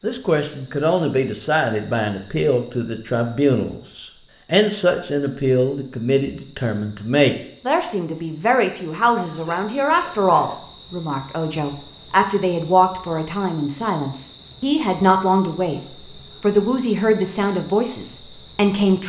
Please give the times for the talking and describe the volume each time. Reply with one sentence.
The talking can be heard from 0.0 to 19.0 s, at a steady volume.